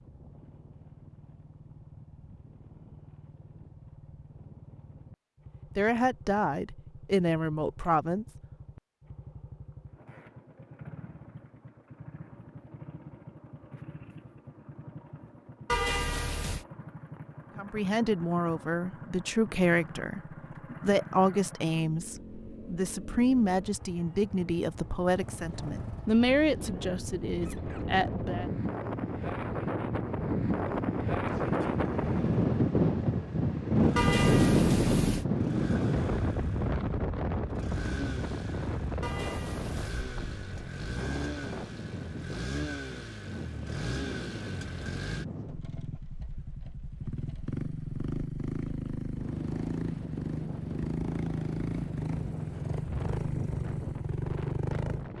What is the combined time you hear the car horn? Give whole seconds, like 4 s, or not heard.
3 s.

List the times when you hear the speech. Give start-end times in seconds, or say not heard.
5.8-8.2, 17.6-28.5.